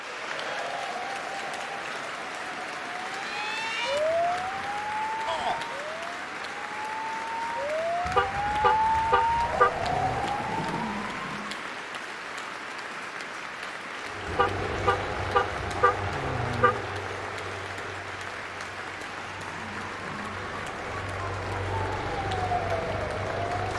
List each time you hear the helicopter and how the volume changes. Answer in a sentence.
The helicopter can be heard from 13.9 to 23.7 s, getting quieter then louder.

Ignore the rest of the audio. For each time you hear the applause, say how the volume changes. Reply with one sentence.
The applause can be heard from 0.0 to 23.7 s, at a steady volume.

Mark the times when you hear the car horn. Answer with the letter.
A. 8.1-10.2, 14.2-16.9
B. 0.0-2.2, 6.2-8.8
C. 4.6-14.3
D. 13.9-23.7
A.